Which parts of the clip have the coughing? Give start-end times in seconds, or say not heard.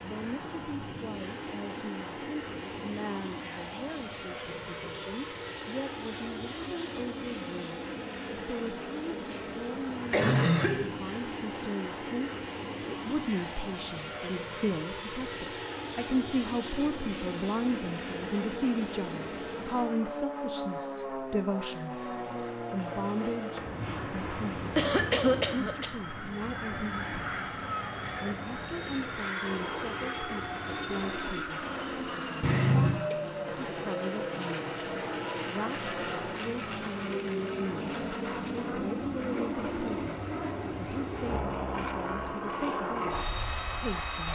10.1-10.9, 24.8-25.9, 32.4-33.1.